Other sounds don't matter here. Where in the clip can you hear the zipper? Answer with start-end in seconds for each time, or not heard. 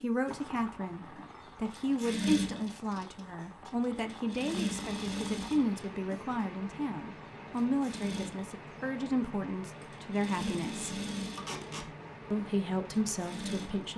not heard.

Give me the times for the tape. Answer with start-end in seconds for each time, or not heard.
2.5-3.8, 11.3-11.9.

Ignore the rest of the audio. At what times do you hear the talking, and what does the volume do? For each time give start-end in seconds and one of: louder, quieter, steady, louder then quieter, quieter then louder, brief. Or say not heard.
0.0-10.9 steady
12.3-13.9 brief.